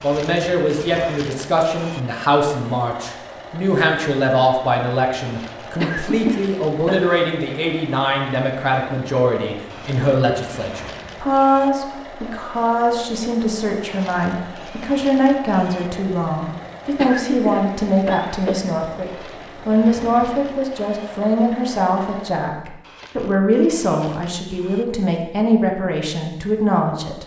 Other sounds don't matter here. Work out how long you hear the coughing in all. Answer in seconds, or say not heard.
3 s.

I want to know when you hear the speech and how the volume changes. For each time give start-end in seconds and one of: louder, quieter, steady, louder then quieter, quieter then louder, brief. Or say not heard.
0.0-27.2 steady.